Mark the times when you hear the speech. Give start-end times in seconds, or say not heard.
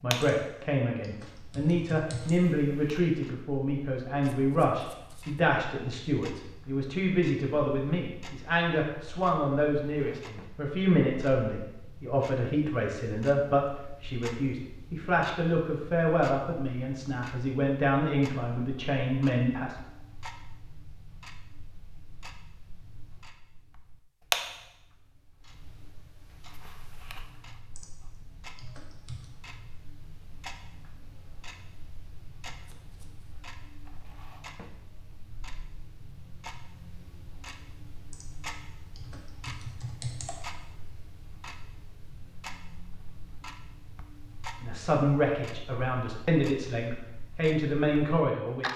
0.0-19.8, 44.6-48.7.